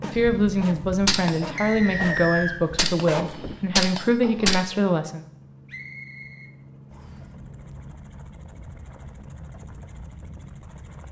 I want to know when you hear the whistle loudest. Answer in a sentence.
The volume of the whistle peaks at 2 seconds.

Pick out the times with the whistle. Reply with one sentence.
The whistle can be heard from 1.6 to 2.6 s and from 5.7 to 7.2 s.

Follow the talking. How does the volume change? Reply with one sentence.
The volume of the talking stays about the same.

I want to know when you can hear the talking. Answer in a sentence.
You can hear the talking from 0.0 to 5.2 s.